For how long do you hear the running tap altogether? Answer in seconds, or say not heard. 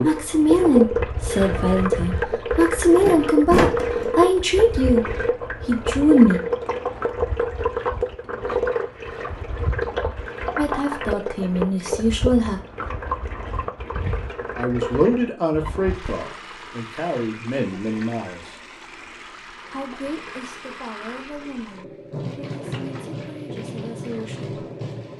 25 s.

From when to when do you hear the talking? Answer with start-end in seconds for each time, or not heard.
0.0-6.4, 10.6-12.6, 14.6-18.6, 19.7-24.6.